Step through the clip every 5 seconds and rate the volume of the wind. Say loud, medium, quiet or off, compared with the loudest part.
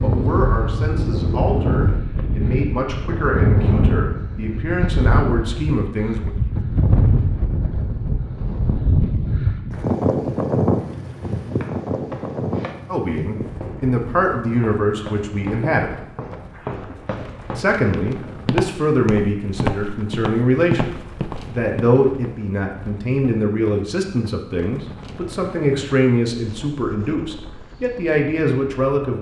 loud, loud, loud, quiet, quiet, quiet.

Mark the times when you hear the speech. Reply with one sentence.
The speech can be heard from 0.0 to 6.3 s, from 12.8 to 15.9 s and from 17.6 to 29.1 s.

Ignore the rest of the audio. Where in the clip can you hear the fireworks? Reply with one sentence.
You can't hear the fireworks here.